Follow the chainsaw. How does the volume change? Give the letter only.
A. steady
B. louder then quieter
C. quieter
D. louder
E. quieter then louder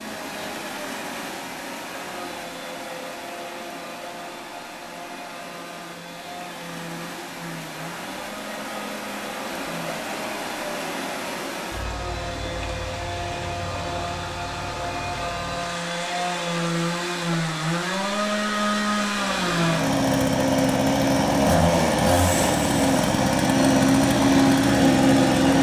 D.